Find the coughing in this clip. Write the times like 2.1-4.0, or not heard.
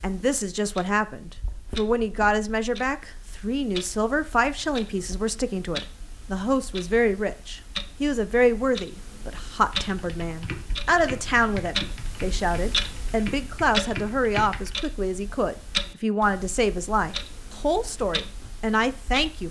not heard.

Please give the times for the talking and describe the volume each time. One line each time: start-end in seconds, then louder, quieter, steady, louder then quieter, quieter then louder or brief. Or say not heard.
0.0-19.4 steady.